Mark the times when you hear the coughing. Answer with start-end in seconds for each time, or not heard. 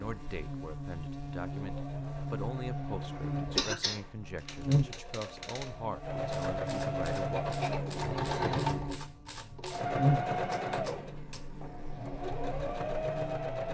3.5-4.0, 7.3-7.9.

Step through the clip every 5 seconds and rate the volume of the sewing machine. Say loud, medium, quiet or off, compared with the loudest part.
quiet, loud, loud.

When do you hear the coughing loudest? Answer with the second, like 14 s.
4 s.